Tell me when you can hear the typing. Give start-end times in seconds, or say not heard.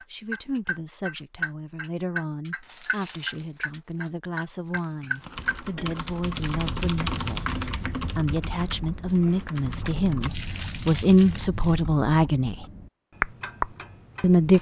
5.2-10.3.